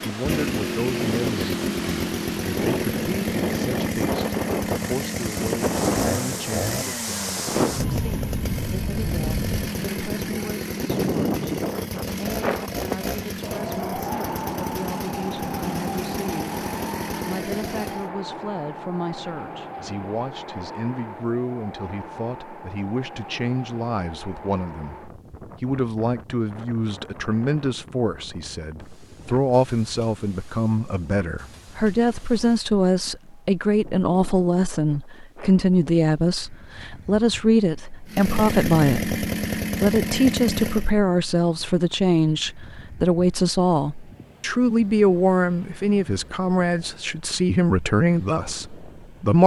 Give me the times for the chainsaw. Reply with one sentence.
The chainsaw can be heard from 0.1 to 18.1 s and from 38.0 to 40.9 s.